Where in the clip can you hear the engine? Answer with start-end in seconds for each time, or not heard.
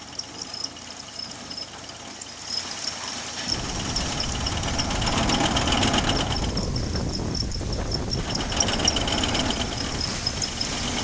0.0-6.6, 8.1-10.9.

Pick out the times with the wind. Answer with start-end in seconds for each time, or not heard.
3.5-10.9.